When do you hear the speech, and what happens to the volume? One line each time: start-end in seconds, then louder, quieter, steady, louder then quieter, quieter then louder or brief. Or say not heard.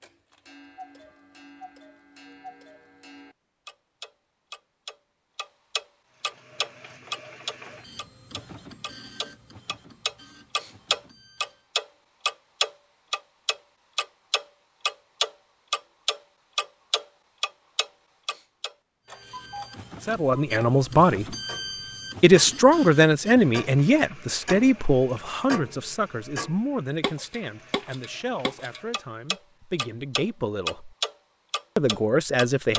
20.1-21.4 brief
22.2-30.9 quieter
31.8-32.7 brief.